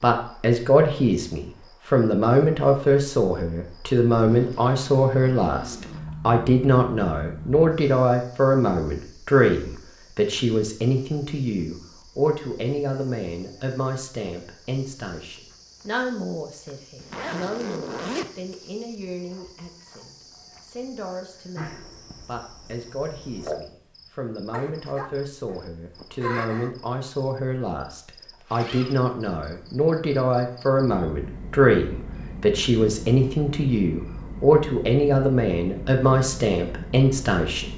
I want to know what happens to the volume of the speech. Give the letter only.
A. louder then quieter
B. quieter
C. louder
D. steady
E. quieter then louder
E.